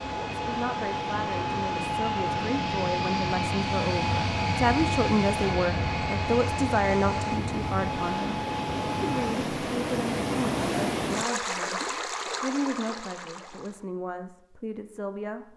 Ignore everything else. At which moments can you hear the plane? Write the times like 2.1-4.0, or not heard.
0.0-9.3.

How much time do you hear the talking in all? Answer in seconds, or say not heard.
15 s.